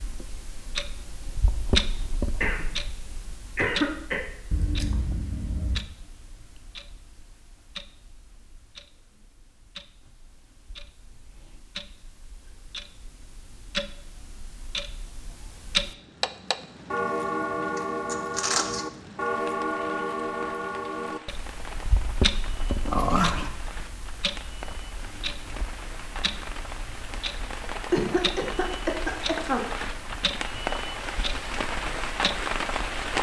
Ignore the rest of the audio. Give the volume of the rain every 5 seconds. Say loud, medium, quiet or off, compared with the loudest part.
off, off, off, quiet, quiet, medium, loud.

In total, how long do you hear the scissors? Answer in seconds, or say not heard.
3 s.